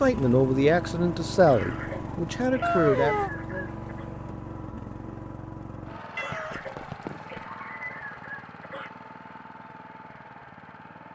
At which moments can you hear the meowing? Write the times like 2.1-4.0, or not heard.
2.6-3.3, 6.2-7.5.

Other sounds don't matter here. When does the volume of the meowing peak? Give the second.
3 s.